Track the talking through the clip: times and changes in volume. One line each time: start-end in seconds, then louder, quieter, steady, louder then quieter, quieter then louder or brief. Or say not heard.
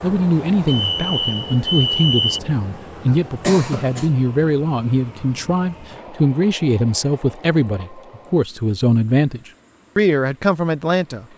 0.0-11.2 steady.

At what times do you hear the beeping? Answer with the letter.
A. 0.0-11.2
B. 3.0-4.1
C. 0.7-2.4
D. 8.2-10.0
C.